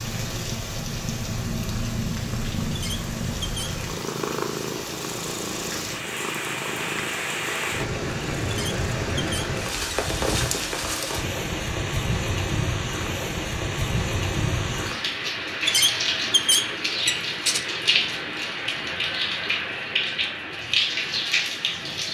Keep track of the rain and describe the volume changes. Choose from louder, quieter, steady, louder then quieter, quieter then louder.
louder.